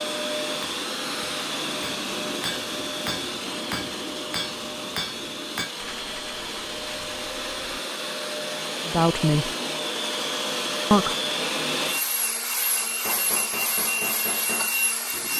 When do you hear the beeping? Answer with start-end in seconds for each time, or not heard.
not heard.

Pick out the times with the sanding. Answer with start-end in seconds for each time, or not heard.
5.8-7.5.